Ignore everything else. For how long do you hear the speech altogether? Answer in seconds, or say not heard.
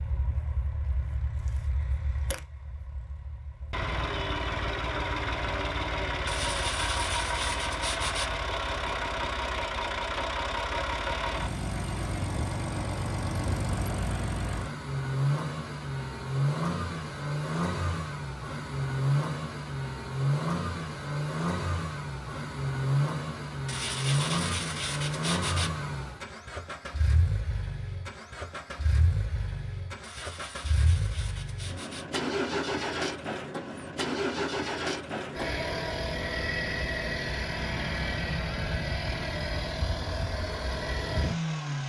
not heard.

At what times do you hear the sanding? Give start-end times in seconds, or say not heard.
6.2-8.3, 23.6-25.7, 30.0-32.0.